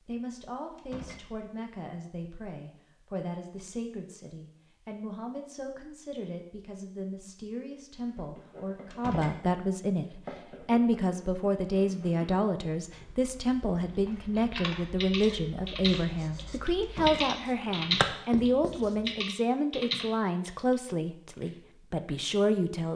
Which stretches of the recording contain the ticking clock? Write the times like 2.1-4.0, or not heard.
not heard.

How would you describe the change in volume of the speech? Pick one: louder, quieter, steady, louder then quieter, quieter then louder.
louder.